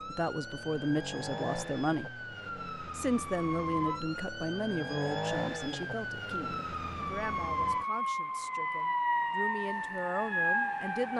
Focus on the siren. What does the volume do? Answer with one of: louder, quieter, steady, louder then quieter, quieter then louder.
louder.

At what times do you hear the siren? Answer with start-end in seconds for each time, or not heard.
0.0-11.1.